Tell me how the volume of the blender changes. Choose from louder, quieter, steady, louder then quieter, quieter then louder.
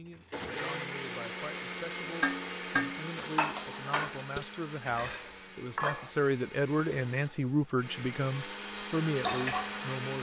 quieter then louder.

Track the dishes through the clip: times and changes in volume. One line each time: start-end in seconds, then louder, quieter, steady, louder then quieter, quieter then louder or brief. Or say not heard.
2.0-6.1 quieter
9.2-9.9 brief.